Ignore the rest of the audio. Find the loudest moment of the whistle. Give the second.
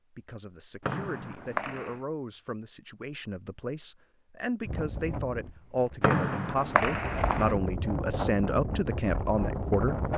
6 s.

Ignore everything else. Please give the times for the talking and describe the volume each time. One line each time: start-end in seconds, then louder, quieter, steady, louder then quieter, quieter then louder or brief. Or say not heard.
0.1-9.9 louder.